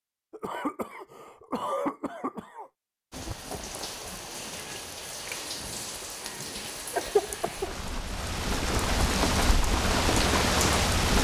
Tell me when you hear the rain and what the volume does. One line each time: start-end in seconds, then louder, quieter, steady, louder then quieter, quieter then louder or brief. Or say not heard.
3.1-11.2 louder.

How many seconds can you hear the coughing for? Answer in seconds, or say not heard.
3 s.